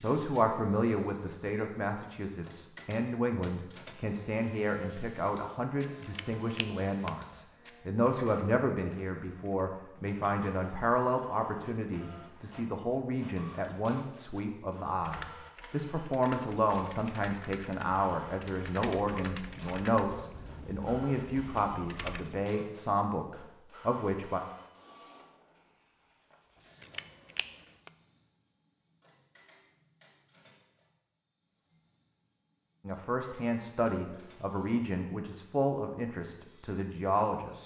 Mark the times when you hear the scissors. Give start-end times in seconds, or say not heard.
6.0-7.1, 26.8-27.9.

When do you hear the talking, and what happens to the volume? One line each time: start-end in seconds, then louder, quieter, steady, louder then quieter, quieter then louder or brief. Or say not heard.
0.0-24.4 steady
32.9-37.6 steady.